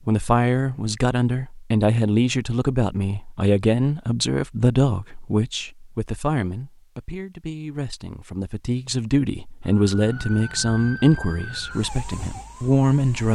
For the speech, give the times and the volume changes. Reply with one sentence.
The speech can be heard from 0.1 to 13.3 s, getting quieter then louder.